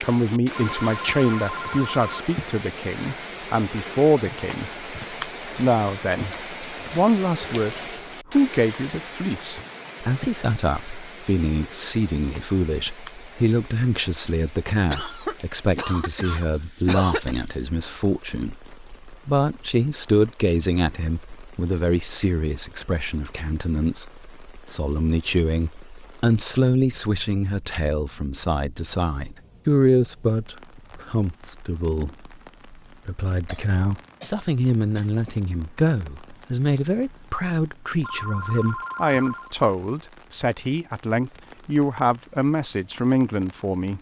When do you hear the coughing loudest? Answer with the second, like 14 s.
17 s.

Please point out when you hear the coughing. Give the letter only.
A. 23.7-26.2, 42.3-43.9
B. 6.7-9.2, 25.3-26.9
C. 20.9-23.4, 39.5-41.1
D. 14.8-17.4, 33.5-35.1
D.